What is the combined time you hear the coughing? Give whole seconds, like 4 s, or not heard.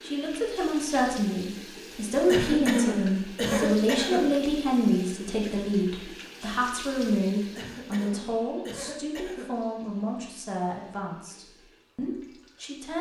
4 s.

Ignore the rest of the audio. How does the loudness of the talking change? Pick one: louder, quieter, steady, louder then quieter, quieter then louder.
quieter.